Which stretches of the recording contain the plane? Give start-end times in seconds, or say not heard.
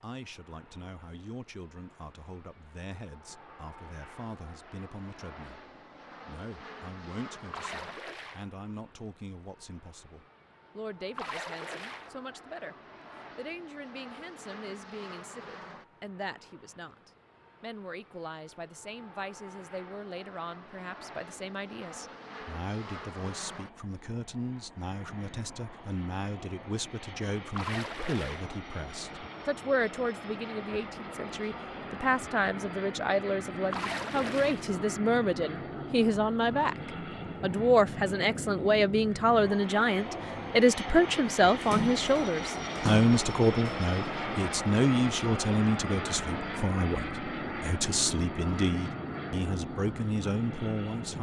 0.0-51.1.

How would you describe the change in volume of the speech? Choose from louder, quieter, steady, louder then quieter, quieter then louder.
louder.